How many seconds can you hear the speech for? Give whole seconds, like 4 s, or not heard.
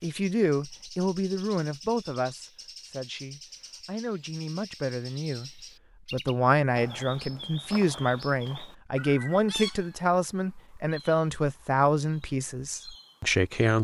14 s.